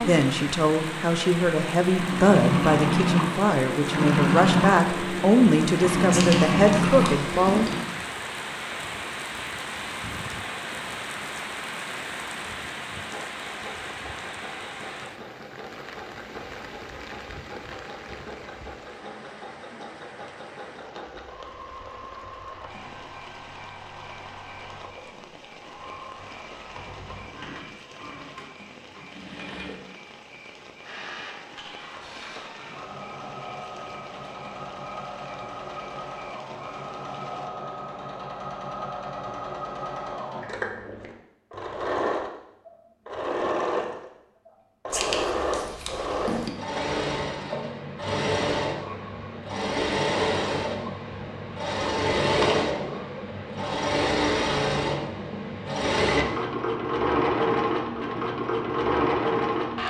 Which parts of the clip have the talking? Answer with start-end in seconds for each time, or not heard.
0.1-7.8.